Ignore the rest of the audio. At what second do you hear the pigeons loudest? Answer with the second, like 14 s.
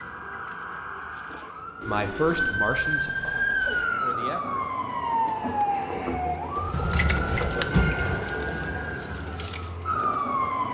8 s.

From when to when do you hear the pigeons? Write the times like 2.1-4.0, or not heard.
1.8-3.8, 6.5-8.2.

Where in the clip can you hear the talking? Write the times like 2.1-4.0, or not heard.
1.9-4.7.